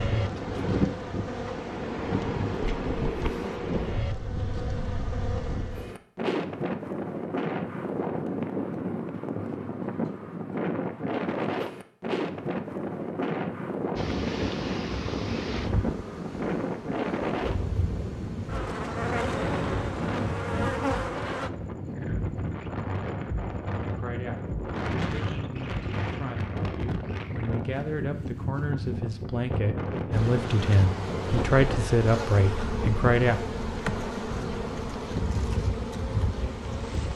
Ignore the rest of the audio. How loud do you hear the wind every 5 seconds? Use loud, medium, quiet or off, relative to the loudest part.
loud, loud, loud, loud, loud, loud, medium, medium.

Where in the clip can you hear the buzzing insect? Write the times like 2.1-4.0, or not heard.
0.0-6.0, 13.9-21.5, 30.1-37.1.